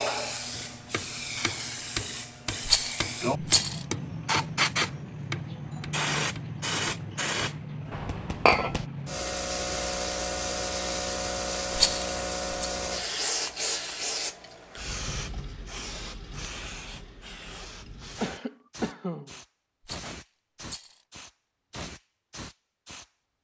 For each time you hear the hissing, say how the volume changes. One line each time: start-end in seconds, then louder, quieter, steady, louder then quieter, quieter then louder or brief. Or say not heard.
0.0-23.4 quieter.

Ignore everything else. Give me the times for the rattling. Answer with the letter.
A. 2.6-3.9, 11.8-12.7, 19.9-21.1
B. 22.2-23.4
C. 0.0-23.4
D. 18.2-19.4
A.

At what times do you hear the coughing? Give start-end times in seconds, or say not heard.
18.2-19.4.